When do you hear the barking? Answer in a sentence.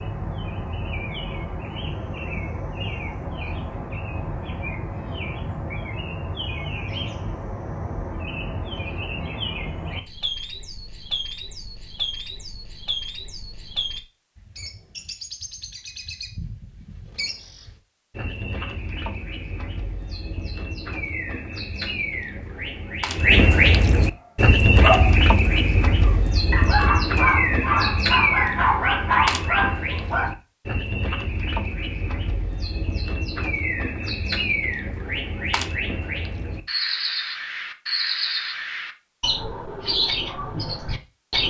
The barking can be heard from 24.7 to 30.3 s.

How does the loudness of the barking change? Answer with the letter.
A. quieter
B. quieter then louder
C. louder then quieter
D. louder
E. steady
D.